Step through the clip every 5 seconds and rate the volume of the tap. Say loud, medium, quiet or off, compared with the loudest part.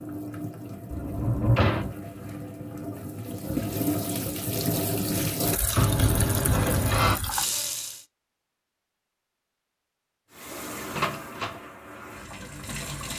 loud, loud, medium.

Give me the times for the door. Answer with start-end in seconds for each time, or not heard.
0.9-1.9, 5.8-7.2, 10.9-11.6.